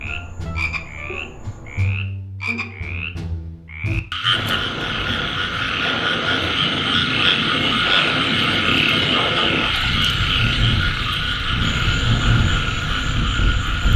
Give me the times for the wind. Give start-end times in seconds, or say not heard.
4.2-13.9.